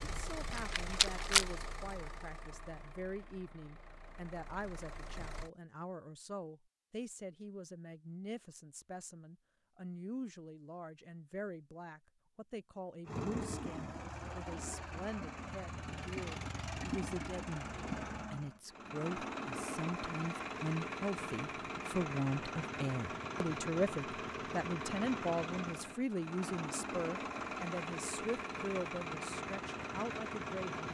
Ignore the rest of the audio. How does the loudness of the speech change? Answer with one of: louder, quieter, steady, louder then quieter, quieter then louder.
louder.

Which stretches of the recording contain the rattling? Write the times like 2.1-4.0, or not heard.
0.5-1.4.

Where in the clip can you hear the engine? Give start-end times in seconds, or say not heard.
0.0-5.5, 13.1-30.9.